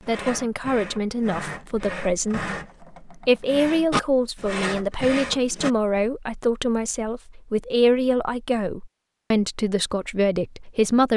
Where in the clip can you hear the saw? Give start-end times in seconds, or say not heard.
0.0-5.7.